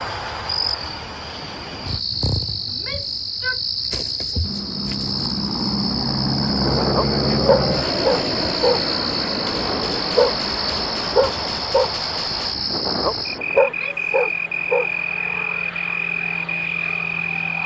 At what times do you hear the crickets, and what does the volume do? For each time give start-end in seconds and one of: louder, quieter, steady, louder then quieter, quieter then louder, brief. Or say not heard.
0.0-17.6 steady.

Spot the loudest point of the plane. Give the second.
7 s.